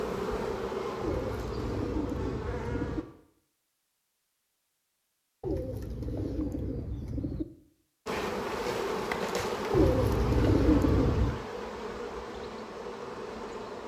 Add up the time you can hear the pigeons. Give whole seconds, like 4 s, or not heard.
6 s.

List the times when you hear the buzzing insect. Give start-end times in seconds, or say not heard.
0.0-3.0, 8.1-13.8.